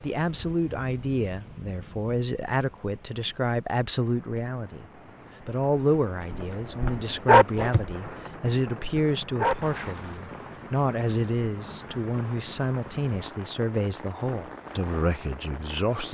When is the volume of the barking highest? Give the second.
7 s.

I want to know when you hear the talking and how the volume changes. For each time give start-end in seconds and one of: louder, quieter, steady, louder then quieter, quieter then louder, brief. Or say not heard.
0.0-16.1 steady.